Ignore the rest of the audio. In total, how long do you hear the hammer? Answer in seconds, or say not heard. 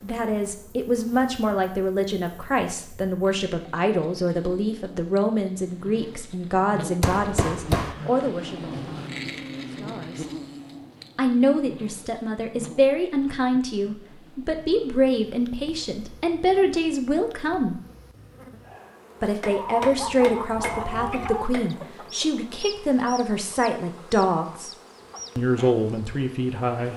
3 s.